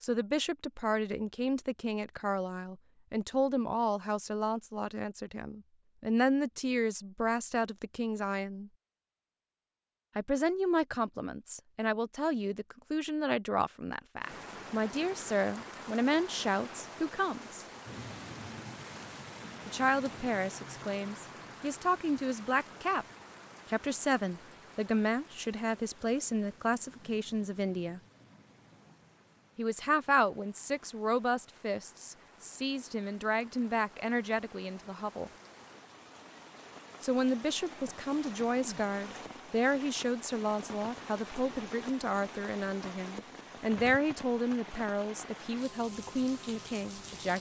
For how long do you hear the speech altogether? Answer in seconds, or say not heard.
40 s.